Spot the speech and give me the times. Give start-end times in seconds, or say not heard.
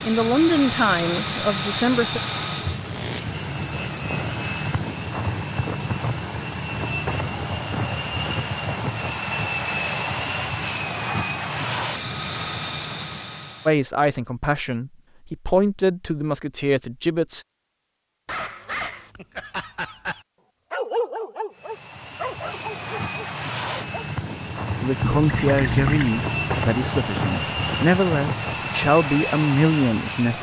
0.0-2.2, 13.7-17.4, 24.8-30.3.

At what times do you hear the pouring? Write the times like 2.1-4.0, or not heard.
25.0-26.1.